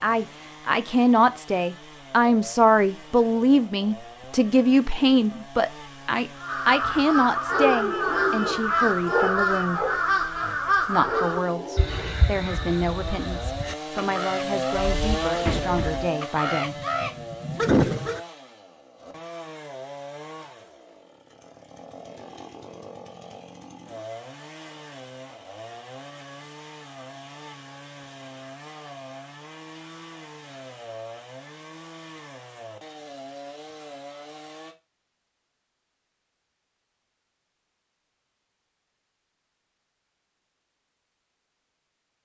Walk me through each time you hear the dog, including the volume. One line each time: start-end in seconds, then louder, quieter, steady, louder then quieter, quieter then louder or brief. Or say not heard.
6.8-12.2 quieter then louder.